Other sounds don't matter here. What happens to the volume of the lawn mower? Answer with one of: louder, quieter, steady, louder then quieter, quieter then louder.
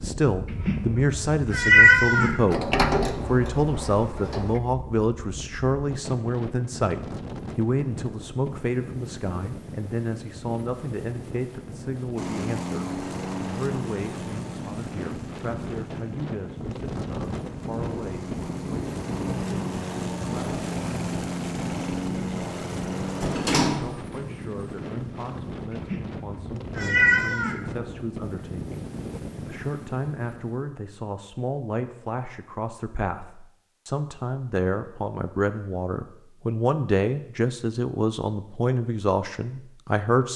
quieter then louder.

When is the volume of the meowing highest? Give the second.
2 s.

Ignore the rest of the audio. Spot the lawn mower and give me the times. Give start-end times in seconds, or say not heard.
12.2-23.6.